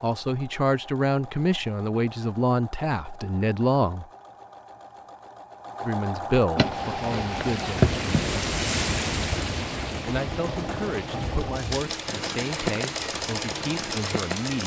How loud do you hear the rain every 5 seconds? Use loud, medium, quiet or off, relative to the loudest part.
off, loud, medium.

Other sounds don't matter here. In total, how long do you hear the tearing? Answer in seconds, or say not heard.
2 s.